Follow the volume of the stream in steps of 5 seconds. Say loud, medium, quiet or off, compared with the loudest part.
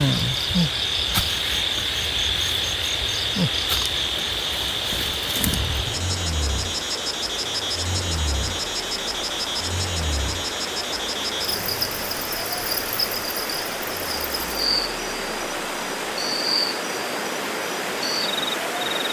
medium, medium, loud, loud.